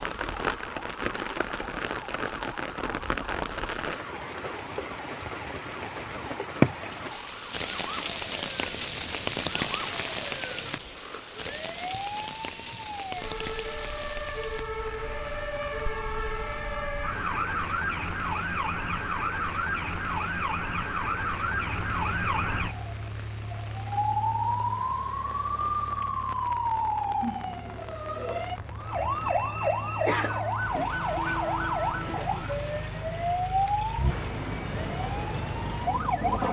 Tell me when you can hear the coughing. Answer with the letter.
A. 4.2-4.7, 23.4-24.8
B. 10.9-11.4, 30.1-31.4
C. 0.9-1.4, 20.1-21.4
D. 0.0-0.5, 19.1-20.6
B.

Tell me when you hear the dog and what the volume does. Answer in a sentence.
You can't hear the dog here.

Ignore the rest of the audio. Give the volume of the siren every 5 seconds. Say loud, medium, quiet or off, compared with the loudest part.
quiet, quiet, medium, loud, loud, loud, loud, loud.